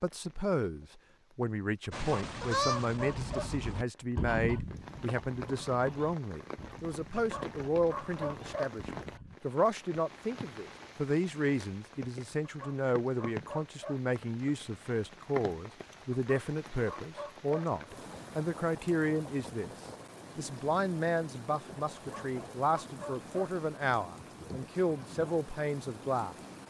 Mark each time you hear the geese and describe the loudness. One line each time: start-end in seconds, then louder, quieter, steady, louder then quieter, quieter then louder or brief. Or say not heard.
1.9-9.4 quieter.